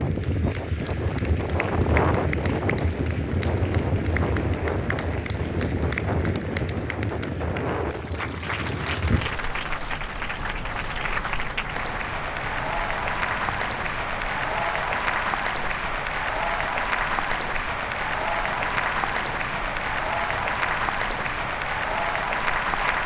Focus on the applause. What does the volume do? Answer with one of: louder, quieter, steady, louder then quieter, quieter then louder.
louder.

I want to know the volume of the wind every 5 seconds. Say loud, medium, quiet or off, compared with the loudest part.
loud, loud, medium, quiet, quiet.